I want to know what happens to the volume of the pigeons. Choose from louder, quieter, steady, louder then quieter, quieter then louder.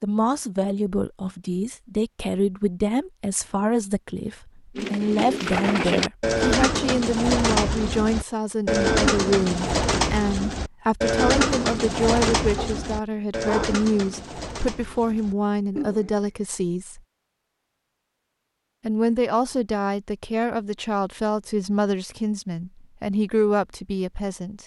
quieter.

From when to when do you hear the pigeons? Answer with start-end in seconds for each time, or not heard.
4.8-16.3.